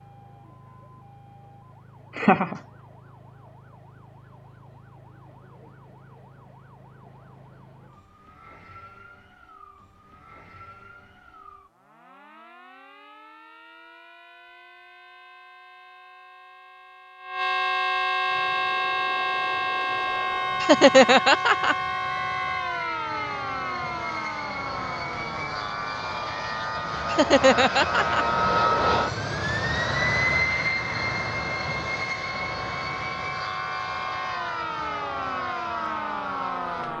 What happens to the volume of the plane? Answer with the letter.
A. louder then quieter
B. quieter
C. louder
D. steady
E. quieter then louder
A.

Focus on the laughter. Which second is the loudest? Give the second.
21 s.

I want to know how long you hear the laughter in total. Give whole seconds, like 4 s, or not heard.
3 s.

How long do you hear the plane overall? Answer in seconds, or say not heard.
19 s.